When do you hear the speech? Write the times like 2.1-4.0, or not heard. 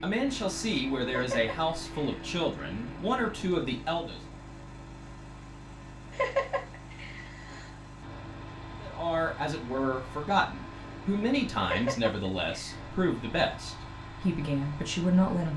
0.0-4.2, 8.8-15.5.